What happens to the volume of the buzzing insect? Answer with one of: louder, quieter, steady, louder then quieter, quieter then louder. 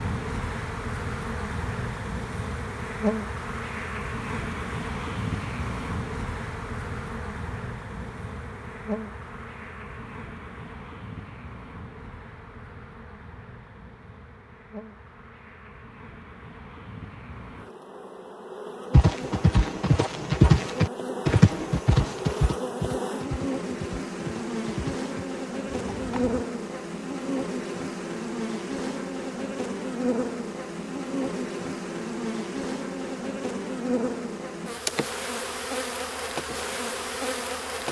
quieter then louder.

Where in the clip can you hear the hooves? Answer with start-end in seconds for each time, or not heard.
18.9-26.4.